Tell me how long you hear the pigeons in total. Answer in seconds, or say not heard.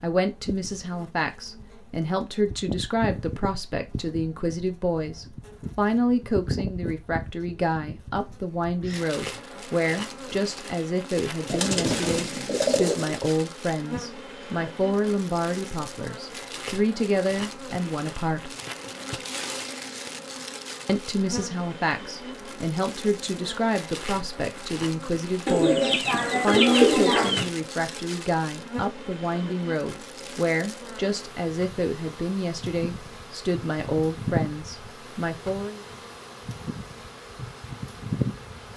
4 s.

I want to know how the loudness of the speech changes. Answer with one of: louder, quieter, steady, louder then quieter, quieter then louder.
steady.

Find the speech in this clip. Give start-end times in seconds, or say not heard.
0.0-18.5, 20.9-35.8.